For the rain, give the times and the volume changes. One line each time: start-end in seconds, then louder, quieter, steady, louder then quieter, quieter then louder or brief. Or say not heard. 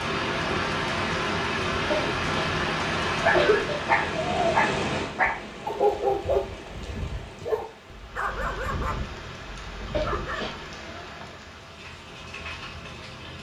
0.0-13.3 quieter.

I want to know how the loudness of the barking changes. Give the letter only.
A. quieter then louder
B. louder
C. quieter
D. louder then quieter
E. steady
C.